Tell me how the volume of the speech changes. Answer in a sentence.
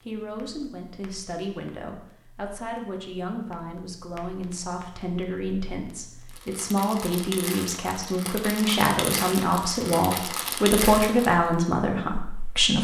The loudness of the speech goes up.